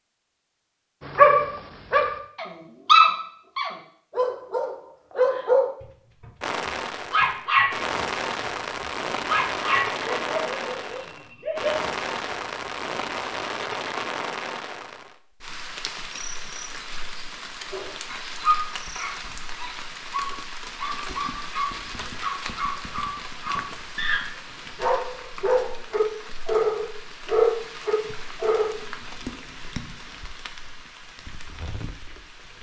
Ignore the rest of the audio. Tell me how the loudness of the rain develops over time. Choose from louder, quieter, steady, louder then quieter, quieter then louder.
quieter.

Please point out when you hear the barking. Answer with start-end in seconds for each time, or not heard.
1.1-6.2, 7.1-7.7, 9.2-11.8, 17.7-28.7.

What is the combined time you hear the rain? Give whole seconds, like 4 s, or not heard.
26 s.